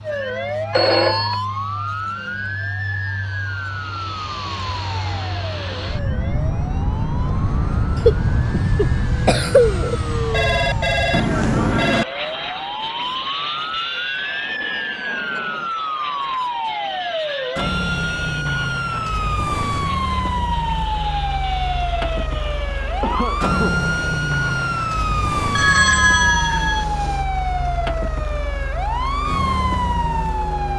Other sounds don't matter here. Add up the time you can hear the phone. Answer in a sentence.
You can hear the phone for 4 seconds altogether.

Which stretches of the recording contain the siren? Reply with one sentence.
You can hear the siren from 0.0 to 30.7 s.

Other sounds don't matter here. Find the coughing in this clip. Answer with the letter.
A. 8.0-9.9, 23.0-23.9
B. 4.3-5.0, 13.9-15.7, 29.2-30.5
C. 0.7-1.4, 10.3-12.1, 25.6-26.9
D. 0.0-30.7
A.